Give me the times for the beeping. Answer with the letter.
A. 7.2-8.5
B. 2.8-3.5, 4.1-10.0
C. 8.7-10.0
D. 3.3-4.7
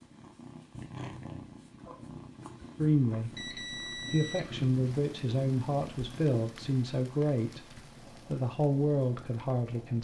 D.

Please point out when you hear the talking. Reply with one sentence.
You can hear the talking from 2.8 to 3.5 s and from 4.1 to 10.0 s.